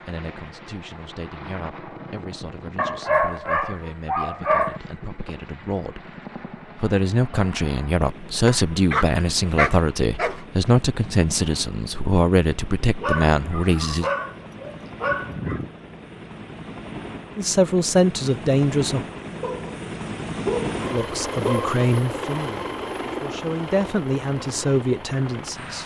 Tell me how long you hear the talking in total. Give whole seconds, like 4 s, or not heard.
20 s.